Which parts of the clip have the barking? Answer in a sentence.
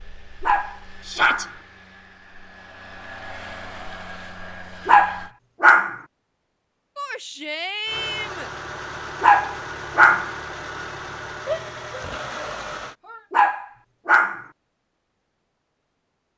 The barking can be heard from 0.4 to 1.6 s, from 4.8 to 6.0 s, from 9.2 to 10.3 s and from 13.3 to 14.4 s.